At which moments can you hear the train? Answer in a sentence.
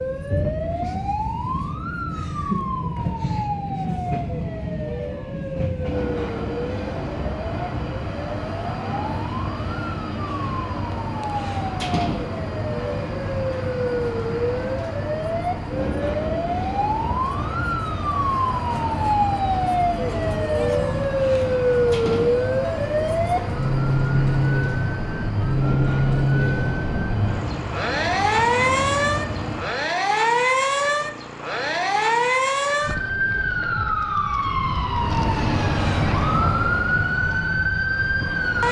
You can hear the train from 0.0 to 29.8 s and from 35.0 to 38.6 s.